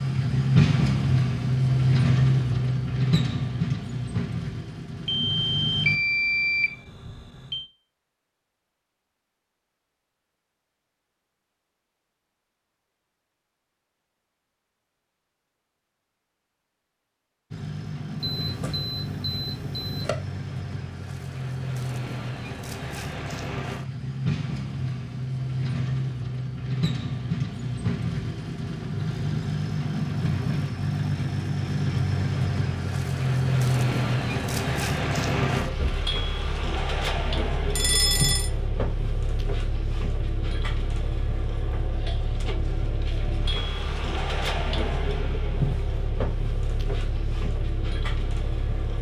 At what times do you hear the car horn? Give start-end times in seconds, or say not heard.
not heard.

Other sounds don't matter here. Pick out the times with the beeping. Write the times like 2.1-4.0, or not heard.
5.0-7.7, 18.2-20.1, 37.8-38.5.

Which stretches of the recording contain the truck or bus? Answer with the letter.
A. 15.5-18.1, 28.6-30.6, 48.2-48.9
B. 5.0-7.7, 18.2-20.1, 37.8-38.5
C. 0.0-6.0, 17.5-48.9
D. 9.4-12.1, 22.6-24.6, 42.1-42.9
C.